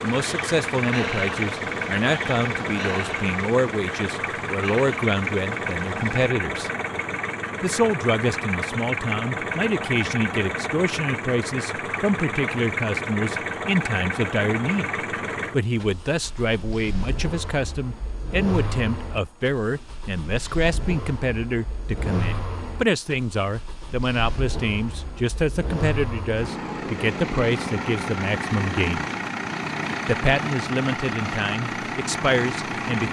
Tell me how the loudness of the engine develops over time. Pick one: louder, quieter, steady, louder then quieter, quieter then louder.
quieter then louder.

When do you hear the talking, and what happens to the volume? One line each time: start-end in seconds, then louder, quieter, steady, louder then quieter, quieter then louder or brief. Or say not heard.
0.0-6.7 steady
7.6-14.9 steady
15.5-29.1 steady
30.1-33.0 brief.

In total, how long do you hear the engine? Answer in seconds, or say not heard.
33 s.